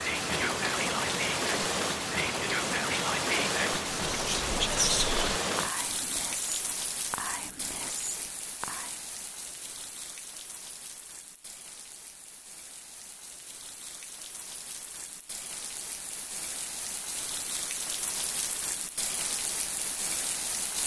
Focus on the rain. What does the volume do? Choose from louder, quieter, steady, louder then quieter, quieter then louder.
quieter then louder.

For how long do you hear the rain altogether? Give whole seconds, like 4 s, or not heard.
21 s.